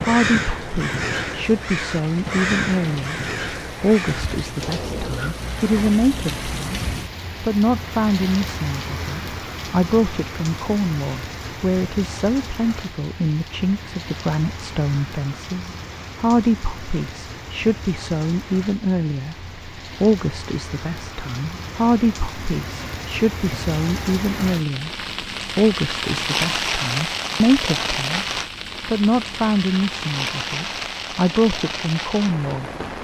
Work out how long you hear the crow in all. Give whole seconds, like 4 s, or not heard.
5 s.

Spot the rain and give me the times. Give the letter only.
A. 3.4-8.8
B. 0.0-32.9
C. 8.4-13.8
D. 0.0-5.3
B.